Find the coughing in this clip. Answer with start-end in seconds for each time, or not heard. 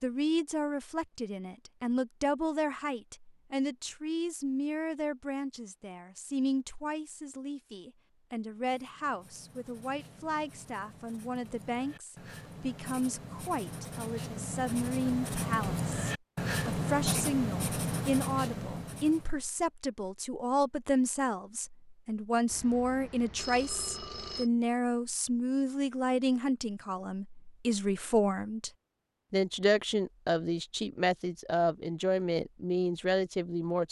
not heard.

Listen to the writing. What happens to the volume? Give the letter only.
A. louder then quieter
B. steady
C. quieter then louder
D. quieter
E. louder
E.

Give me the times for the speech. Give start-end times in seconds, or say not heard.
0.0-28.7, 29.3-33.8.